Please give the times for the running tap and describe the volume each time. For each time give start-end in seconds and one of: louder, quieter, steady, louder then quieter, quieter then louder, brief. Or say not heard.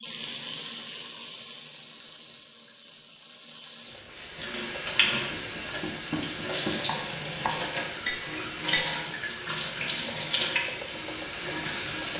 0.0-12.1 louder.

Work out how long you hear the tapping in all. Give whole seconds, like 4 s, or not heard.
4 s.